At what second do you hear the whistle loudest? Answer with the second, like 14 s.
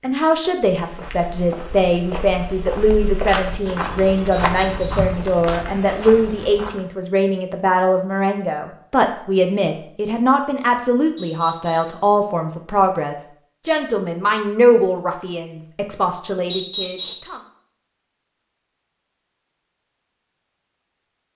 17 s.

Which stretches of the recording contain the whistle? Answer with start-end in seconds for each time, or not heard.
4.3-5.1, 11.2-12.0, 16.5-17.4.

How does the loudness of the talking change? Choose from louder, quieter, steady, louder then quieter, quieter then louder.
steady.